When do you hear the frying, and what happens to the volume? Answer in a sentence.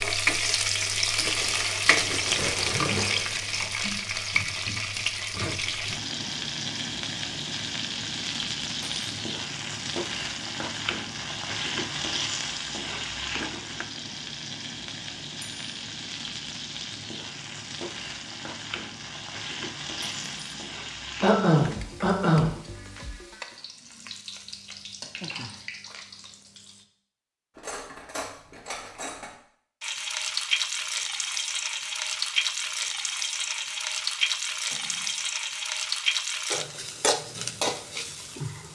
You can hear the frying from 0.0 to 26.9 s, getting quieter; and from 29.8 to 38.6 s, at a steady volume.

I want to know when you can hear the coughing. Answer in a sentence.
The coughing can be heard from 21.2 to 22.5 s.